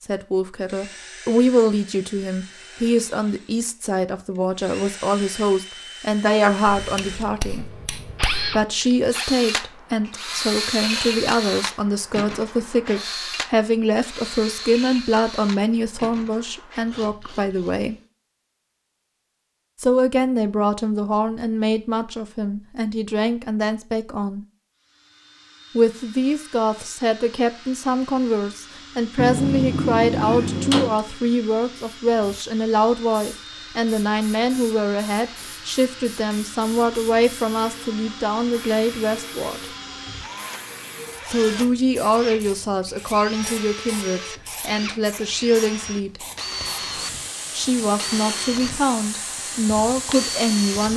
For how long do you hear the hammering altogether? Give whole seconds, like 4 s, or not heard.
4 s.